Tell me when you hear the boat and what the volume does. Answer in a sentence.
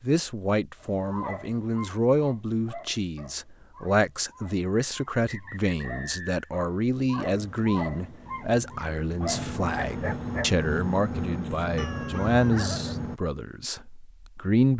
You can hear the boat from 7.2 to 13.2 s, getting louder.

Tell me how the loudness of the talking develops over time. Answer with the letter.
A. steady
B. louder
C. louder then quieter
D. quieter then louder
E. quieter
A.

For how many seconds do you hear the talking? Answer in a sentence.
The talking can be heard for 15 seconds in total.